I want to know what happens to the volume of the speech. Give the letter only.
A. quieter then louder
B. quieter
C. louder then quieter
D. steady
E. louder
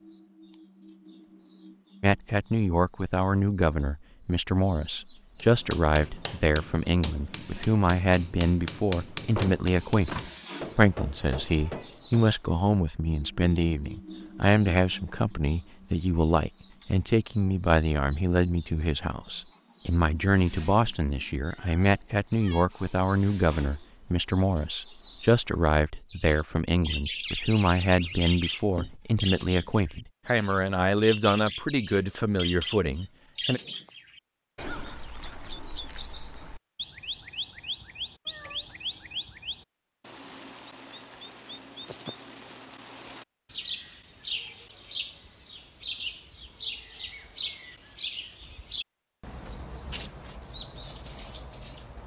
D.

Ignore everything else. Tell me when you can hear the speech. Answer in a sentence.
You can hear the speech from 2.0 to 33.6 s.